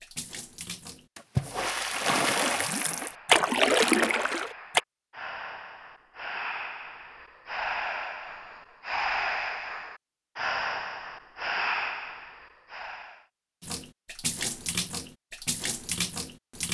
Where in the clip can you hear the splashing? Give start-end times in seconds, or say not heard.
0.0-4.8, 13.6-16.6.